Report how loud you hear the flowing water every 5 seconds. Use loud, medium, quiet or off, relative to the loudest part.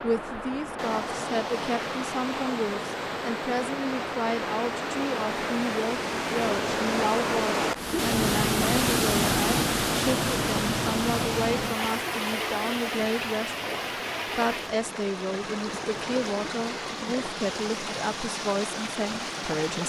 medium, loud, loud, medium.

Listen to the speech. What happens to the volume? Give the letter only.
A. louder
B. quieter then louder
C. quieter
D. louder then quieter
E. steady
E.